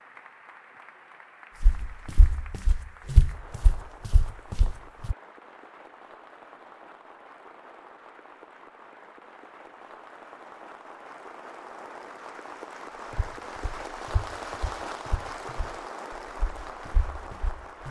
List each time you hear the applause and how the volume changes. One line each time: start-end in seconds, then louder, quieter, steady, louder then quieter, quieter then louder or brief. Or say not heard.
0.0-17.8 louder.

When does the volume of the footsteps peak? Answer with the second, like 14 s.
3 s.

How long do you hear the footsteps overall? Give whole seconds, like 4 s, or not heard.
8 s.